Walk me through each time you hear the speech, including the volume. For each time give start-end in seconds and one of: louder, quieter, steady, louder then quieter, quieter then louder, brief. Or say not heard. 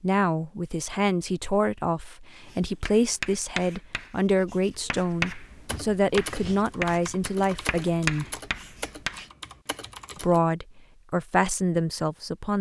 0.0-8.2 steady
10.2-12.5 brief.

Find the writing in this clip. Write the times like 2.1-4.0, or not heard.
2.5-9.3.